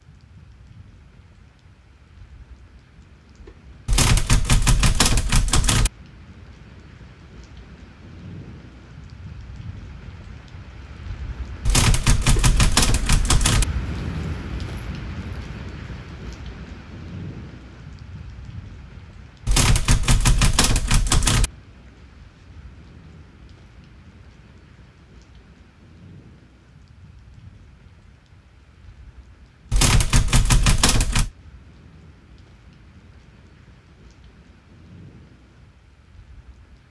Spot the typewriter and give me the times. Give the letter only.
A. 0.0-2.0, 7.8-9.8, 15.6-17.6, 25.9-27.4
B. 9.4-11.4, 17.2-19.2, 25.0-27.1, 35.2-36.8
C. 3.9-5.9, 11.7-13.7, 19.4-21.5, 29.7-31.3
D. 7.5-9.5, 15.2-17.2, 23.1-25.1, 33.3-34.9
C.